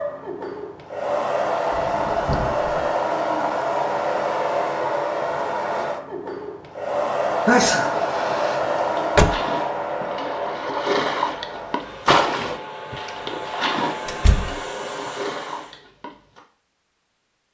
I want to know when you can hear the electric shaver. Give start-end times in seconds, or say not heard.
not heard.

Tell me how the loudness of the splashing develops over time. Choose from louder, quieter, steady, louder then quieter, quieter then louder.
louder then quieter.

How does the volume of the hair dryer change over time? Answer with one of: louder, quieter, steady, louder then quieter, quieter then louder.
quieter.